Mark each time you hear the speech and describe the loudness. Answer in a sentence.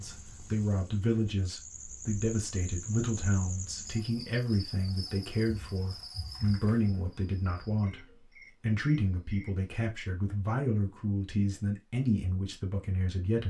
You can hear the speech from 0.0 to 13.4 s, at a steady volume.